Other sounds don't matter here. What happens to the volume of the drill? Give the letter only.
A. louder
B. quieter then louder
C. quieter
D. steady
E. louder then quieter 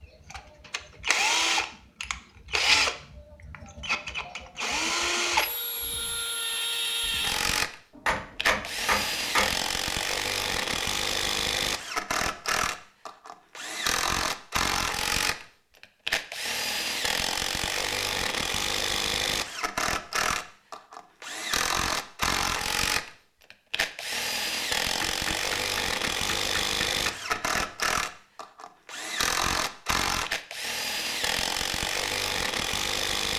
D.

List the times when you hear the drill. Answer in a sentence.
The drill can be heard from 0.0 to 33.3 s.